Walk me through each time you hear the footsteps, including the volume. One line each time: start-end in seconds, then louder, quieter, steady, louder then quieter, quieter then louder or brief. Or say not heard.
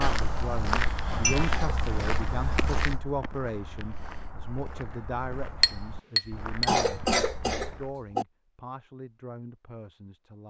0.0-8.0 quieter.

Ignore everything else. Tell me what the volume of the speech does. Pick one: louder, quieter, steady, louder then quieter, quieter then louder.
quieter.